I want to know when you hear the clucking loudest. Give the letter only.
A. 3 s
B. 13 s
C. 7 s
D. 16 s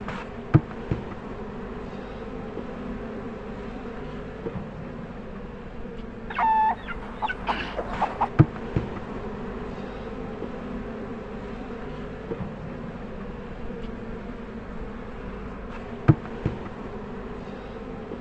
C.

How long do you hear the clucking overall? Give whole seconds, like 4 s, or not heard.
2 s.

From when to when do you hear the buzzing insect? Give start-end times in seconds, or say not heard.
0.0-18.1.